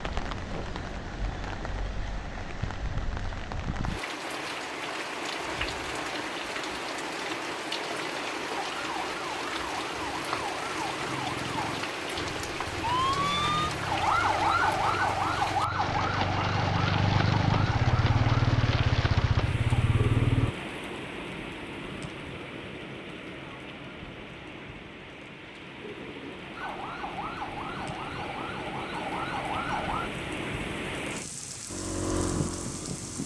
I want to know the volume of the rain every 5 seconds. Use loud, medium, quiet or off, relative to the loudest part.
loud, loud, loud, loud, medium, medium, loud.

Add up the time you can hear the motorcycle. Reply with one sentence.
The motorcycle can be heard for 10 seconds in total.